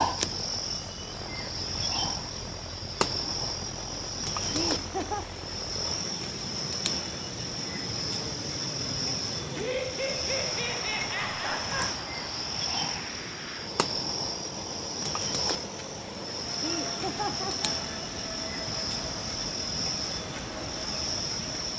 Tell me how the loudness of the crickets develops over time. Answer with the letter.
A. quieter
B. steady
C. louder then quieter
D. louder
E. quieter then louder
B.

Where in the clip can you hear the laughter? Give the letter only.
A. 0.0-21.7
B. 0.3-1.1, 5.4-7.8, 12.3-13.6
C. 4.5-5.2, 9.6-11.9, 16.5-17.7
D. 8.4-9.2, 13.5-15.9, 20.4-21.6
C.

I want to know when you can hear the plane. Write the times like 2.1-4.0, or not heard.
0.0-21.7.